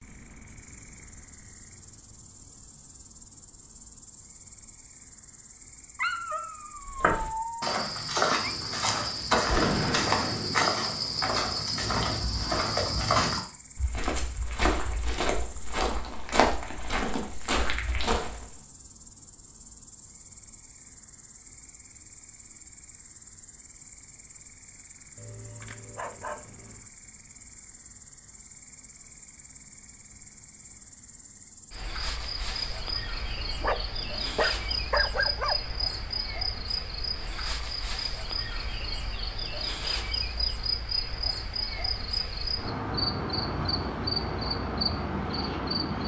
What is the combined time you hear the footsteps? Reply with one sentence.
The footsteps can be heard for 12 seconds in total.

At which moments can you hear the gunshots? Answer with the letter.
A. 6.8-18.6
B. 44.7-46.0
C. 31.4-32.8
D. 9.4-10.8
D.